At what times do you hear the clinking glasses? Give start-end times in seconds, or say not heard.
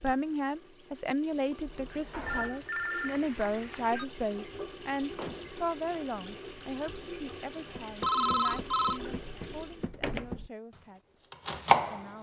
not heard.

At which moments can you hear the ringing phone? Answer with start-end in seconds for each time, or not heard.
2.2-4.0, 8.0-9.0.